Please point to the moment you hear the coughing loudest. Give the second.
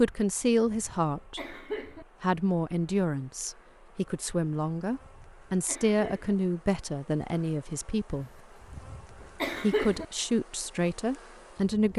10 s.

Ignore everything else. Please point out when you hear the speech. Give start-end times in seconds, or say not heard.
0.0-1.6, 2.2-8.3, 9.6-11.9.